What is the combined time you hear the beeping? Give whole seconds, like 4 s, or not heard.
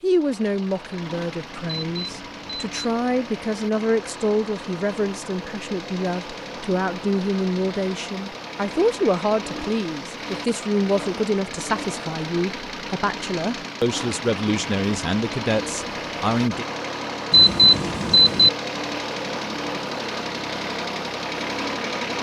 2 s.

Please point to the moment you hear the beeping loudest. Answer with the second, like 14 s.
18 s.